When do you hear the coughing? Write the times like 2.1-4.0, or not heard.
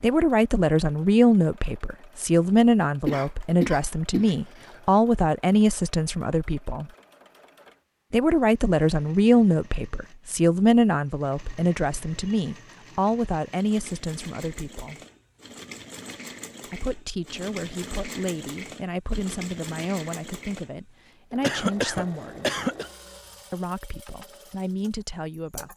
3.0-4.8, 21.4-22.9.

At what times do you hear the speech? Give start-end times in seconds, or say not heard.
0.0-6.9, 8.1-15.0, 16.6-22.6, 23.5-25.7.